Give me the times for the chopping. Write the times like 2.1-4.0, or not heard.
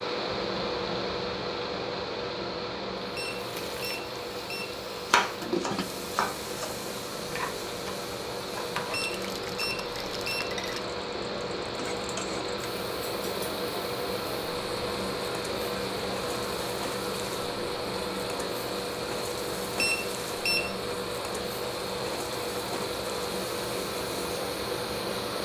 5.1-6.5.